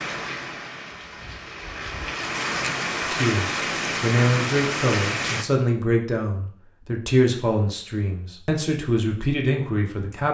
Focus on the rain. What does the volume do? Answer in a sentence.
The volume of the rain goes up.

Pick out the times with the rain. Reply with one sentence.
The rain can be heard from 0.0 to 5.5 s.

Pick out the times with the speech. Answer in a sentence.
The speech can be heard from 3.1 to 10.2 s.